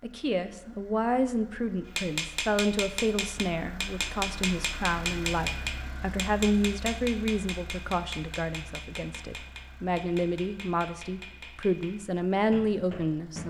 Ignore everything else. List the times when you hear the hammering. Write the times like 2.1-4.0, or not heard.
1.9-13.4.